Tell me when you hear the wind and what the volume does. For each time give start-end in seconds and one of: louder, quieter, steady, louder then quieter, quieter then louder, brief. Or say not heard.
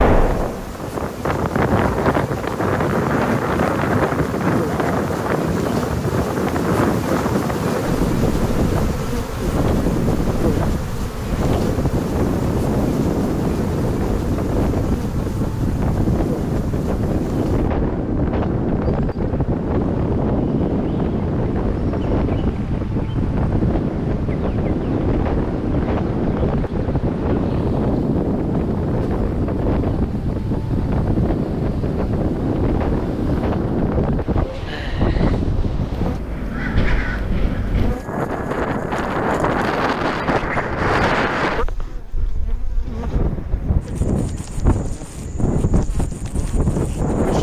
0.0-47.3 steady.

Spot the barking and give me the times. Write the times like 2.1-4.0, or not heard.
not heard.